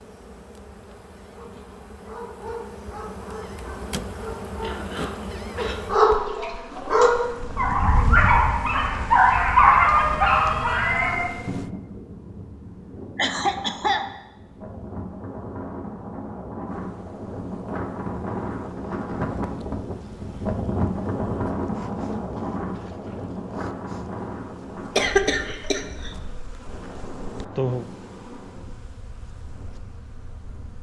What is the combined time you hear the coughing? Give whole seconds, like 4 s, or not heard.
3 s.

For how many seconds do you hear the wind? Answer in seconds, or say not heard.
24 s.